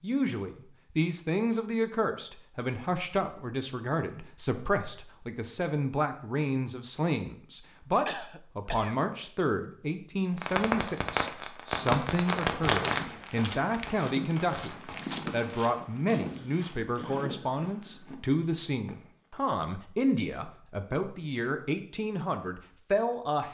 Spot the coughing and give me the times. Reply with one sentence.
You can hear the coughing from 8.1 to 8.9 s and from 16.2 to 17.4 s.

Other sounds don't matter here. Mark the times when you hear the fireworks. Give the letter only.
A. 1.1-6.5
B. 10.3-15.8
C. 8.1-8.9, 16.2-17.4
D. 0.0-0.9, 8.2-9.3
B.